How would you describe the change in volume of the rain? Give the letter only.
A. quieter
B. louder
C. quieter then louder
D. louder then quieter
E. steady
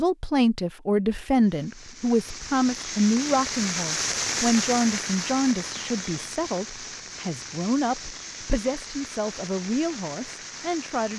D.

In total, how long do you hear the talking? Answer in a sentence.
You can hear the talking for 11 seconds altogether.